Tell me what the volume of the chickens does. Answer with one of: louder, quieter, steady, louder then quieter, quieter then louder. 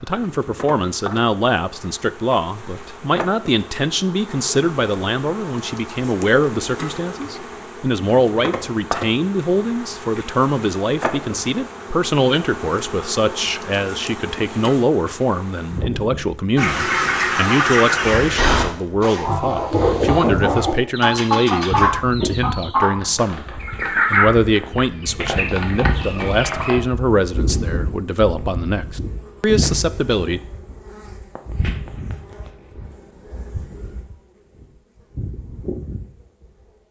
quieter.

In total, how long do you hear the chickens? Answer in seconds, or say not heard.
10 s.